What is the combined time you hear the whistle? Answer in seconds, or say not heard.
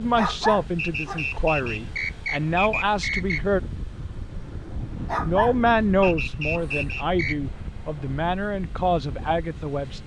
4 s.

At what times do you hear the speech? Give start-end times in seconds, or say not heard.
0.0-3.6, 5.2-10.0.